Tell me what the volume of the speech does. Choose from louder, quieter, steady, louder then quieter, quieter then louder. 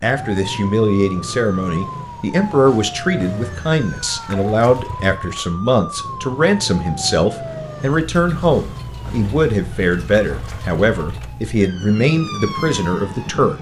steady.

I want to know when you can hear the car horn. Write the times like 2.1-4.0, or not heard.
not heard.